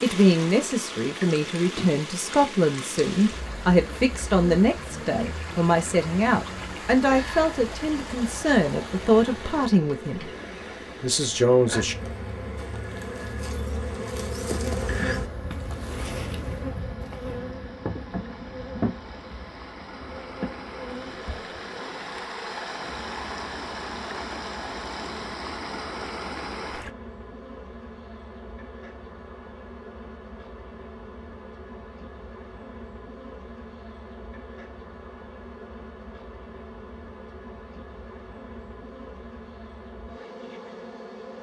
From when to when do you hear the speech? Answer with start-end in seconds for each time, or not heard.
0.0-10.3, 11.0-11.9.